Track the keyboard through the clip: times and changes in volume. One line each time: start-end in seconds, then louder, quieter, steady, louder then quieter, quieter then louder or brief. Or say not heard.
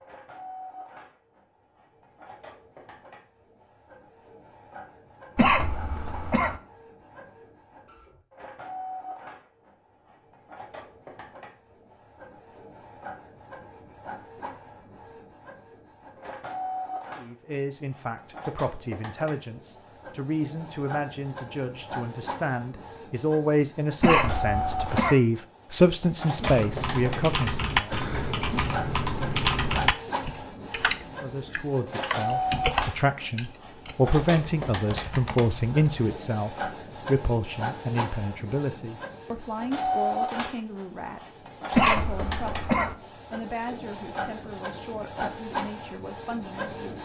26.4-36.1 quieter.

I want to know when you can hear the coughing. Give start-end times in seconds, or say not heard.
5.3-6.6, 24.0-25.1, 41.7-43.0.